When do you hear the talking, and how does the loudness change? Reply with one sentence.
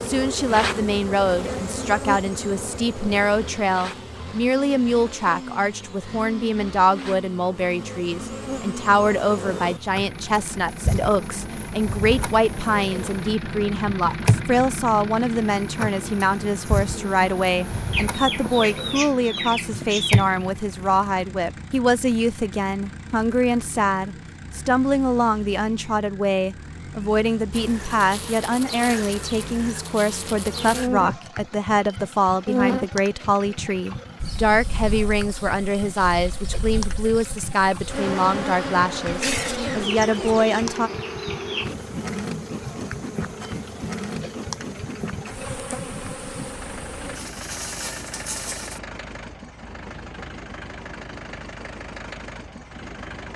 You can hear the talking from 0.0 to 40.9 s, at a steady volume.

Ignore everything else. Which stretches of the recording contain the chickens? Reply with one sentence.
The chickens can be heard from 17.9 to 20.2 s and from 39.0 to 40.5 s.